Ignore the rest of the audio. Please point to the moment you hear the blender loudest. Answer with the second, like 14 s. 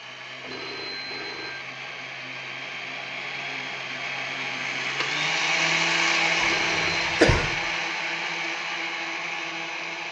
6 s.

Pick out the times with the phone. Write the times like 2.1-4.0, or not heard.
0.4-1.6, 6.5-6.9.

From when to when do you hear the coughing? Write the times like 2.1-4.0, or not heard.
6.3-7.5.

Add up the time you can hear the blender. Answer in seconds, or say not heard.
10 s.